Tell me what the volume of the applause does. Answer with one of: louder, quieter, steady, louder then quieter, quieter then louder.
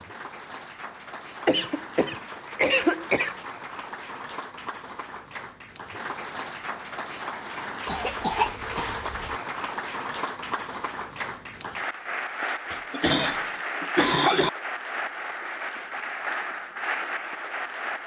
louder.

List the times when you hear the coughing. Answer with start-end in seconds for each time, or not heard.
1.4-3.4, 7.8-9.4, 12.7-14.5.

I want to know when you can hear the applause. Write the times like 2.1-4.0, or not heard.
0.0-18.0.